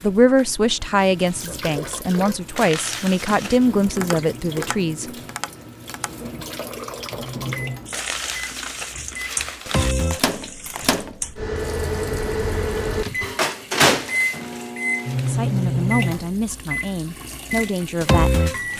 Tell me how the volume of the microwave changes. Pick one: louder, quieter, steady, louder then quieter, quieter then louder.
louder.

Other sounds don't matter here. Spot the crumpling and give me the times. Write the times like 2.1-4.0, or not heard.
2.5-3.8, 7.9-9.9, 13.9-15.4.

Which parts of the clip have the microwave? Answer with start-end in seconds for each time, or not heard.
7.2-18.7.